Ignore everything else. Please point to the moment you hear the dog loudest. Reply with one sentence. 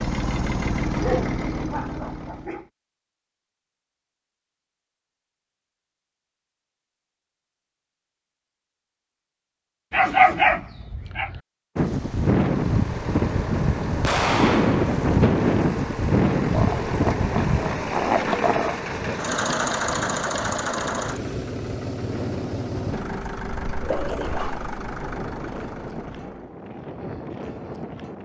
The loudest moment of the dog is at 10 seconds.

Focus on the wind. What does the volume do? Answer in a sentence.
The volume of the wind goes down.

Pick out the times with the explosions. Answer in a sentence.
The explosions can be heard from 14.0 to 14.9 s.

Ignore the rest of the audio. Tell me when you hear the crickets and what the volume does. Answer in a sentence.
You can't hear the crickets here.